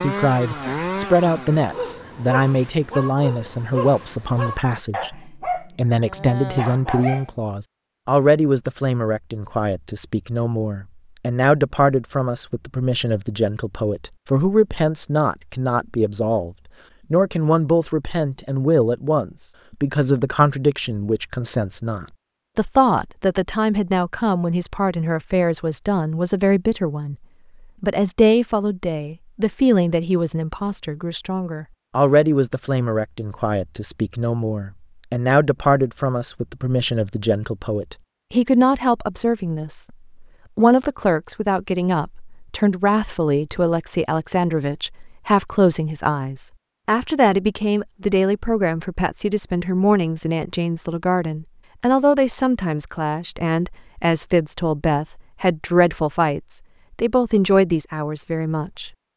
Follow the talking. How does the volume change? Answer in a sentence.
The volume of the talking stays about the same.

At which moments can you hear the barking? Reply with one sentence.
The barking can be heard from 1.7 to 7.3 s.